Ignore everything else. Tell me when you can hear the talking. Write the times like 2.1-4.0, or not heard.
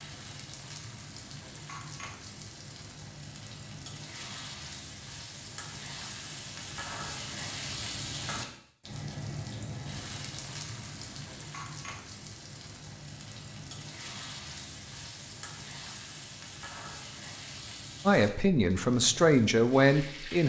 18.1-20.4.